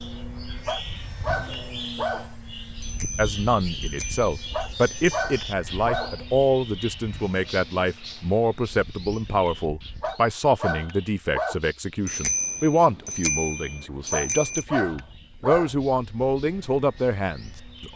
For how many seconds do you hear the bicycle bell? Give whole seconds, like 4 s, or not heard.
5 s.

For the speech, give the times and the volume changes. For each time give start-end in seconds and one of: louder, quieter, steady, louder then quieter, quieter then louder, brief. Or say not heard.
3.1-17.9 steady.